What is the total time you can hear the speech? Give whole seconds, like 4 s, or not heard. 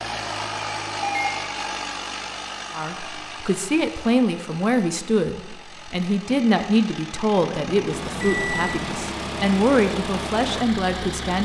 9 s.